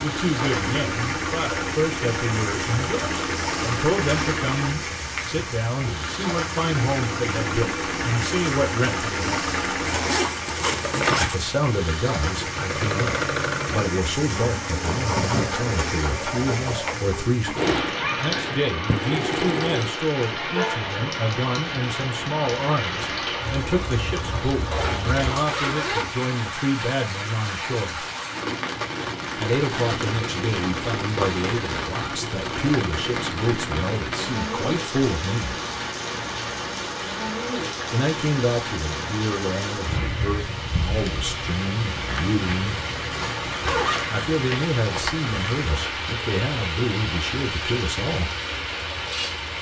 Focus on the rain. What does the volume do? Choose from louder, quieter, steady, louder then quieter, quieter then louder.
steady.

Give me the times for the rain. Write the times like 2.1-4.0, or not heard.
0.0-49.5.